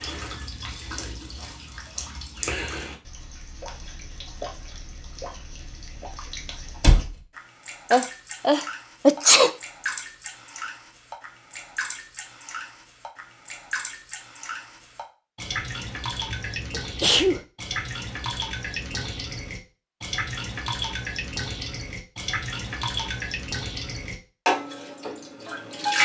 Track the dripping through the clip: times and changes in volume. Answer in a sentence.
The dripping can be heard from 0.0 to 26.0 s, getting louder.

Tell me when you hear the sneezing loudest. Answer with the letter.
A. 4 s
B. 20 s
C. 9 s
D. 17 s
C.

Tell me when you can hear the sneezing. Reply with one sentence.
You can hear the sneezing from 7.9 to 9.5 s and from 16.3 to 17.4 s.